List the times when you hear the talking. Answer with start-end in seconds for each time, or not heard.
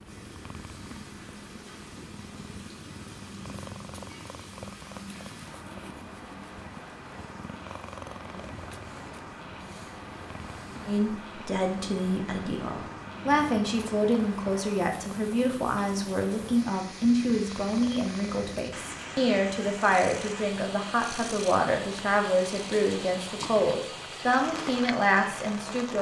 10.8-25.9.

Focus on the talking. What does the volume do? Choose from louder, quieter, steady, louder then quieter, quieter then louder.
steady.